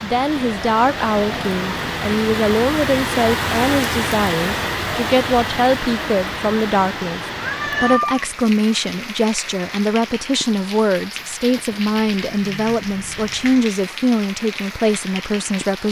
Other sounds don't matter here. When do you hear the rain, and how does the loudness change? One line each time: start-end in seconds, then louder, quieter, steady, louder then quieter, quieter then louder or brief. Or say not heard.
0.0-15.8 quieter.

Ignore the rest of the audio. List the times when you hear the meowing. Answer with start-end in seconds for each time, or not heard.
1.1-2.0, 7.3-8.3, 11.8-13.7.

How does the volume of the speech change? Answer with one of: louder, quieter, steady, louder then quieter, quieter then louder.
steady.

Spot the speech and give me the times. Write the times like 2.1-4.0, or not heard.
0.0-15.8.